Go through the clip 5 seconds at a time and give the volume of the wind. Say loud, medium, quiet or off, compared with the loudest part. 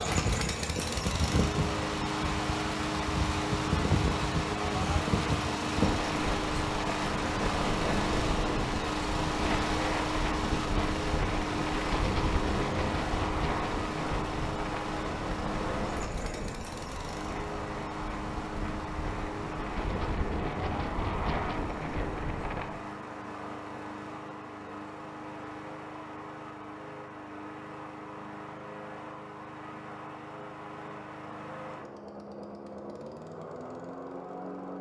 loud, loud, loud, medium, loud, off, off.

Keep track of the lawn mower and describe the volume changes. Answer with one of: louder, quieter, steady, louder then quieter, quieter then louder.
quieter.